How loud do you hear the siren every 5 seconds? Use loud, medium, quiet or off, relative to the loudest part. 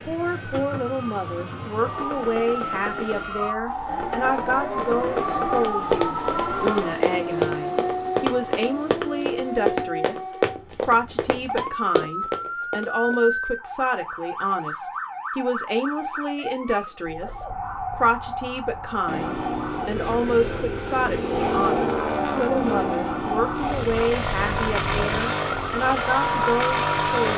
loud, loud, medium, medium, medium, loud.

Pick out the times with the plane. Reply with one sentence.
The plane can be heard from 0.0 to 9.8 s and from 19.1 to 27.3 s.